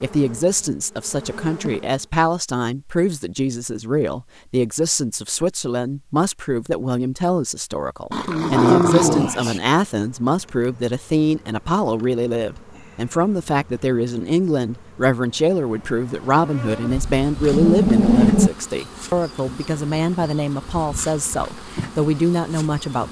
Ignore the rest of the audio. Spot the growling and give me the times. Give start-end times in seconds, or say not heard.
8.1-9.6, 16.9-18.5.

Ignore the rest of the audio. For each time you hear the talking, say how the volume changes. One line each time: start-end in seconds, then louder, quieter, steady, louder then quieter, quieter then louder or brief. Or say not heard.
0.0-23.0 steady.